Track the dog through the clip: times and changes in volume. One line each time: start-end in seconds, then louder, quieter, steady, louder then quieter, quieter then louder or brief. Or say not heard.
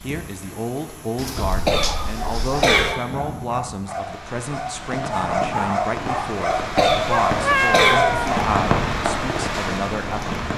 1.7-8.6 louder.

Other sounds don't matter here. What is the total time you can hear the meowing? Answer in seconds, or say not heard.
3 s.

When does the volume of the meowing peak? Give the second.
8 s.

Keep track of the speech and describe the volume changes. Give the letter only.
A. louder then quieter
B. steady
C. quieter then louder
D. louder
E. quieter
B.